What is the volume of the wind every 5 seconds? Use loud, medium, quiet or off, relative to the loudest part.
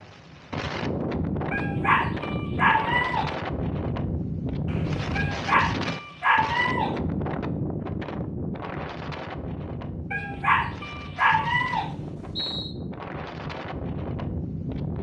loud, loud, medium.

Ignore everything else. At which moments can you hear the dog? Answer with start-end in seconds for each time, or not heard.
1.5-3.4, 5.2-7.0, 10.1-11.9.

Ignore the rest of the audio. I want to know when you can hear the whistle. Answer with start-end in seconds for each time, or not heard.
4.7-5.2, 11.3-12.8.